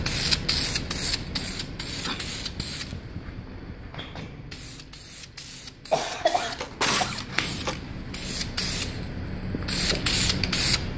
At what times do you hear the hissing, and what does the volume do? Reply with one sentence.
The hissing can be heard from 0.0 to 10.9 s, getting quieter then louder.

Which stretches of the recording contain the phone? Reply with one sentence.
The phone can't be heard in this clip.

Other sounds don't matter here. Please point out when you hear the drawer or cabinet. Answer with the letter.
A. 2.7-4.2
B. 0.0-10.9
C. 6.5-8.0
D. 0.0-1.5
C.